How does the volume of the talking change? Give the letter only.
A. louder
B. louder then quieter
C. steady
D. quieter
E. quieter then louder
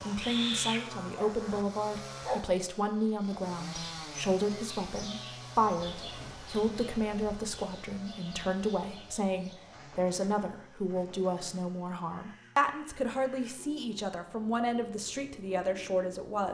C.